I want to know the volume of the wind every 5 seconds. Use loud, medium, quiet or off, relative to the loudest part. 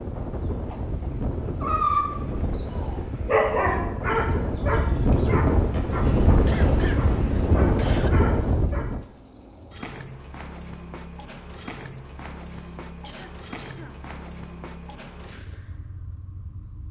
medium, loud, off, off.